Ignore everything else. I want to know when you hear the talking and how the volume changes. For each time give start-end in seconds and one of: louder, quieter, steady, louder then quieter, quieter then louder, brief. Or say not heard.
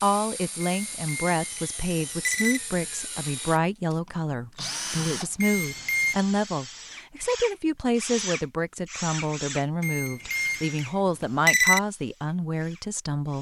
0.0-13.3 steady.